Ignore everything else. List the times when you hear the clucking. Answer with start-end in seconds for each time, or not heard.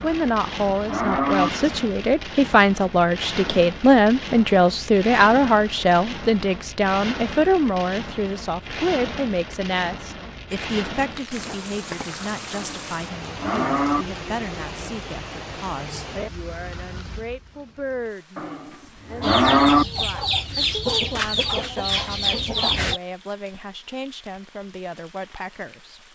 19.2-23.0.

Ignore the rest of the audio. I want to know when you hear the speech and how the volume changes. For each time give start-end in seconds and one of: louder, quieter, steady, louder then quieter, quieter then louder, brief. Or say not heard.
0.0-26.1 quieter.